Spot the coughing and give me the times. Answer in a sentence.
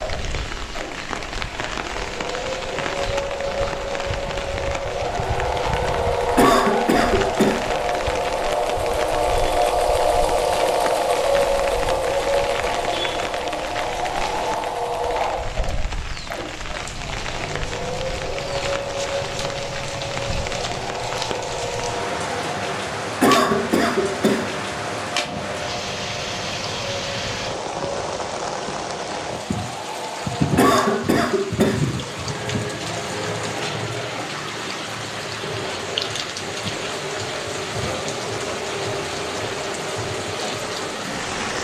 The coughing can be heard from 6.3 to 7.6 s, from 23.2 to 24.4 s and from 30.6 to 31.8 s.